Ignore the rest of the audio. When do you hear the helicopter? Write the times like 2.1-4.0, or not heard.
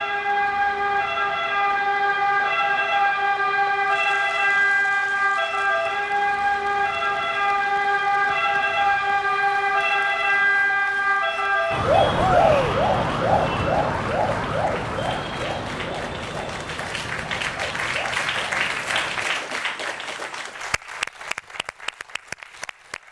not heard.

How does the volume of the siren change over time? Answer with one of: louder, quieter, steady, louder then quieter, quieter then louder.
quieter.